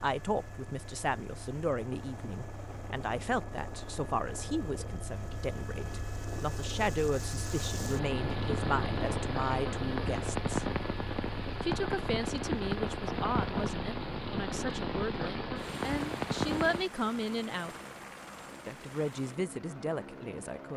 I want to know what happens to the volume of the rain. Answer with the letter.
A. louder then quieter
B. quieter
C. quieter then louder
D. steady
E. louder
E.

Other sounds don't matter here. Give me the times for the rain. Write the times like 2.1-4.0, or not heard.
0.0-16.9.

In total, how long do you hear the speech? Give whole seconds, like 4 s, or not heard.
19 s.